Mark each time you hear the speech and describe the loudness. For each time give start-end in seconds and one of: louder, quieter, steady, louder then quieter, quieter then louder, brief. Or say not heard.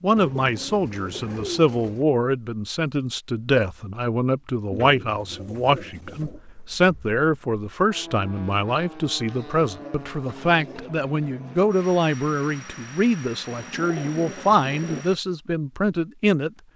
0.0-16.5 steady.